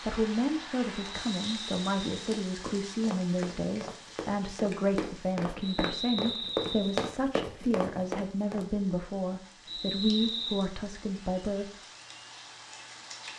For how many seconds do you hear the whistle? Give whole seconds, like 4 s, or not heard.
4 s.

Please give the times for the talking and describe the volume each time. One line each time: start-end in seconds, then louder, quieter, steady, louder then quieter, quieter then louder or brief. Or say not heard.
0.0-11.7 steady.